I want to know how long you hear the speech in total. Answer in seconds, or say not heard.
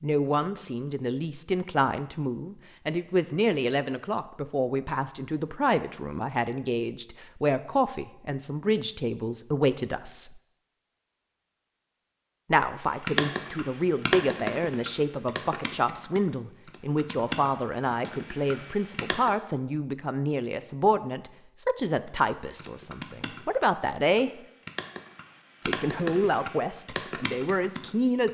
25 s.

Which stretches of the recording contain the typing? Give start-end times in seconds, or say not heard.
13.0-19.3, 22.1-28.2.